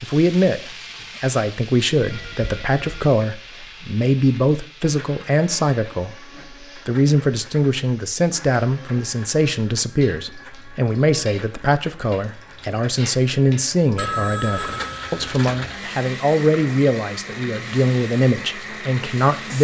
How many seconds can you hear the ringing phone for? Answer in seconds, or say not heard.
3 s.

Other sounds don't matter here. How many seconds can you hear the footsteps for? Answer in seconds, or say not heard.
not heard.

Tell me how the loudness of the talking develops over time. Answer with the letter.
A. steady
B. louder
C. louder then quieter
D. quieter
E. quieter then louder
A.